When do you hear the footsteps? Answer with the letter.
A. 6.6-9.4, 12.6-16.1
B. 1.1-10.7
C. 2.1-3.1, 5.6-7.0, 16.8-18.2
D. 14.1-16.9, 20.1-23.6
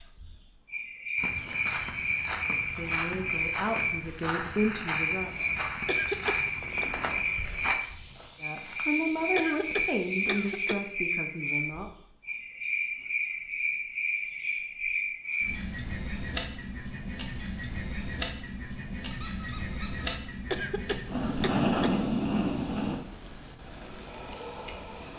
B.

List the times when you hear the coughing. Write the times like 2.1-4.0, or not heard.
5.8-6.8, 9.3-10.8, 20.5-21.9.